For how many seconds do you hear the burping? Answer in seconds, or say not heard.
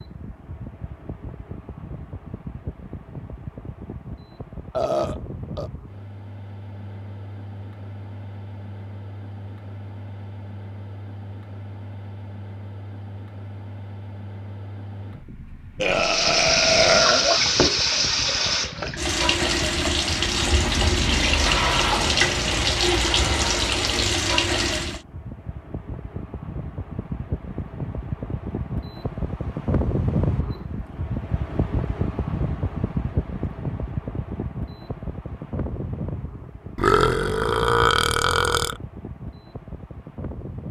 5 s.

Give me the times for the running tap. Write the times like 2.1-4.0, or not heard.
15.9-25.0.